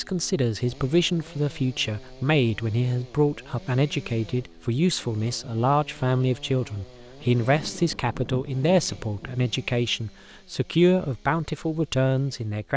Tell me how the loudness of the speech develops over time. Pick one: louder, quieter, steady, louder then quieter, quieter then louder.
steady.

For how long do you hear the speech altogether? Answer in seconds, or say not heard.
13 s.